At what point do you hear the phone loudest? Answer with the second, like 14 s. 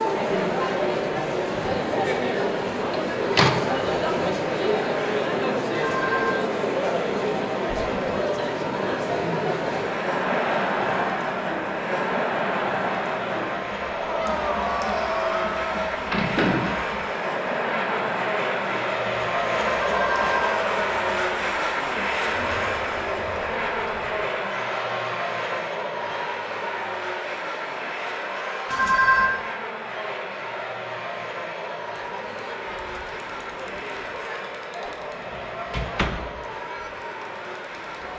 29 s.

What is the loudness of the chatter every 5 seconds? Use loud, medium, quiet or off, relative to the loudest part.
loud, loud, loud, medium, medium, quiet, quiet, quiet.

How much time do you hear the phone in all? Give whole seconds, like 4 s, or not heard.
2 s.